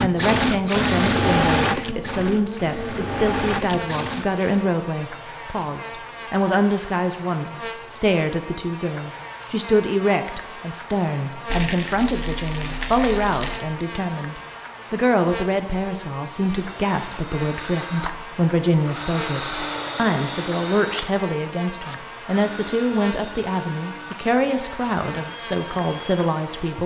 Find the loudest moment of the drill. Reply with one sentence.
The loudest moment of the drill is at 1 second.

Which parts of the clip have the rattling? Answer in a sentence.
The rattling can be heard from 11.5 to 13.7 s.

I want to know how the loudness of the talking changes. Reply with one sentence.
The volume of the talking stays about the same.